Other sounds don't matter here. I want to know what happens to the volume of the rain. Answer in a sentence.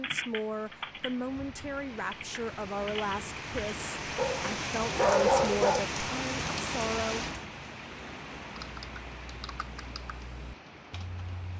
The volume of the rain goes up, then down.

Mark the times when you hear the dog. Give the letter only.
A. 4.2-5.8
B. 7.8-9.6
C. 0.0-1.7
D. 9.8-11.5
A.